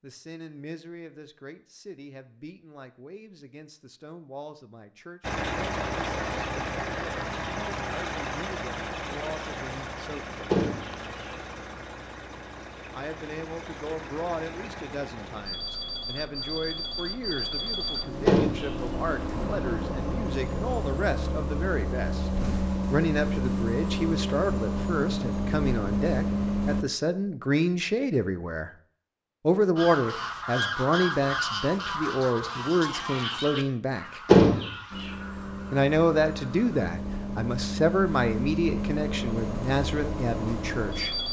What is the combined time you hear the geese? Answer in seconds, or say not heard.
7 s.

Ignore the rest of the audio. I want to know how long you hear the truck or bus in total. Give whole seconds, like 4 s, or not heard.
28 s.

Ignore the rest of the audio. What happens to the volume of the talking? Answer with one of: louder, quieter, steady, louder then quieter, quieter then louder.
louder.